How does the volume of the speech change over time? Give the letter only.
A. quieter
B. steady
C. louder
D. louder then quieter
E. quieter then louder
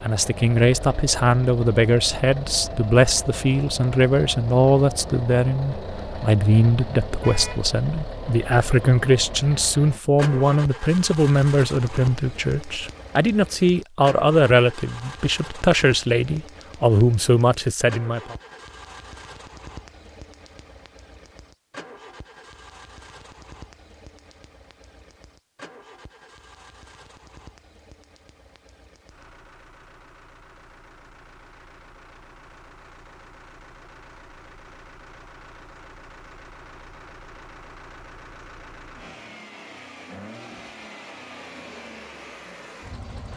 B.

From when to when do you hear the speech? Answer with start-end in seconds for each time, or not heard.
0.0-18.4.